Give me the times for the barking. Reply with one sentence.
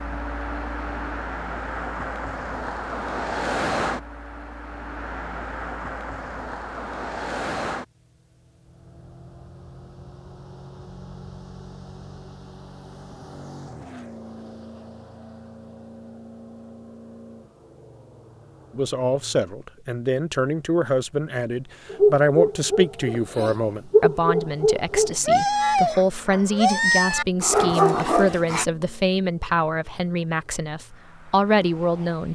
The barking can be heard from 21.9 to 28.6 s.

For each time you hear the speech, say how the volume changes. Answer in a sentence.
You can hear the speech from 18.8 to 32.3 s, at a steady volume.